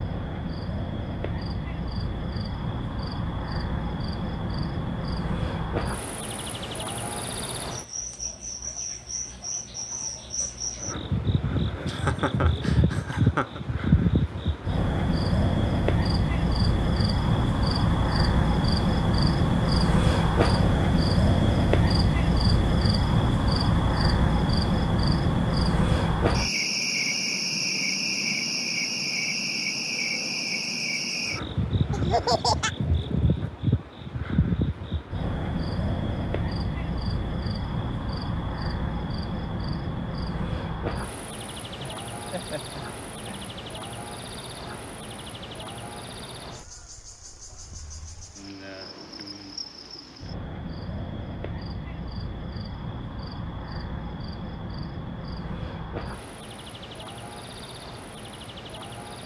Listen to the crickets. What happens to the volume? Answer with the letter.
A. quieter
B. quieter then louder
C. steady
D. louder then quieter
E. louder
D.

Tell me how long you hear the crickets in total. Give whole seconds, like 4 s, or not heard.
59 s.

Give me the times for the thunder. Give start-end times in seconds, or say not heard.
not heard.